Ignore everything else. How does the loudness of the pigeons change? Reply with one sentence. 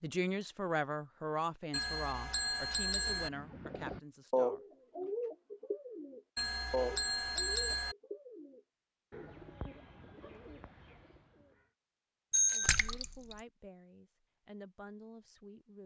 The volume of the pigeons goes down.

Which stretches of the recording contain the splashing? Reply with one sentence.
You can hear the splashing from 12.7 to 13.3 s.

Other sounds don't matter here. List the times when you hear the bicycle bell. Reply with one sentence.
You can hear the bicycle bell from 1.7 to 3.3 s, from 6.3 to 8.0 s and from 12.3 to 12.9 s.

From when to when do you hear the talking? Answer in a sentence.
The talking can be heard from 0.0 to 5.1 s and from 12.5 to 15.8 s.